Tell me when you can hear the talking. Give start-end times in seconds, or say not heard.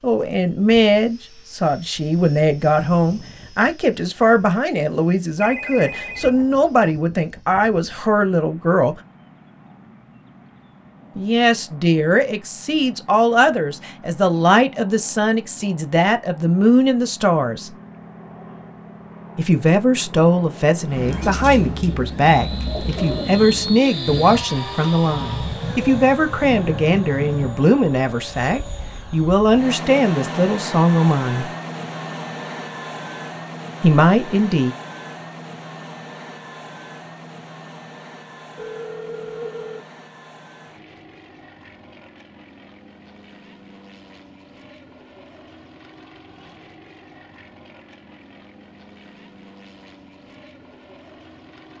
0.0-8.9, 11.2-17.7, 19.4-31.4, 33.8-34.8.